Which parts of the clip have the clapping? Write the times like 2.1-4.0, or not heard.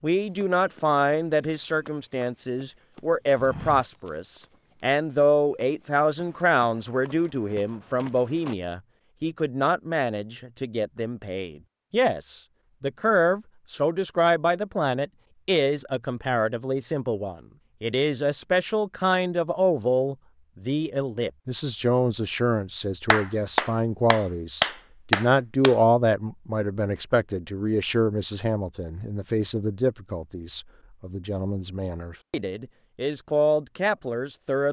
23.1-25.8.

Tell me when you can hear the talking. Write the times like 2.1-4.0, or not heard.
0.0-34.6.